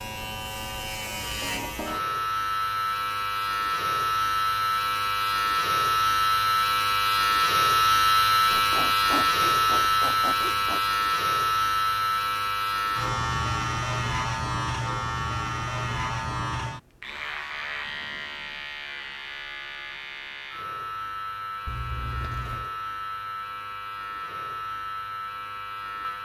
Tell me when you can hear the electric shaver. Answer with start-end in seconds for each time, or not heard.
0.0-26.2.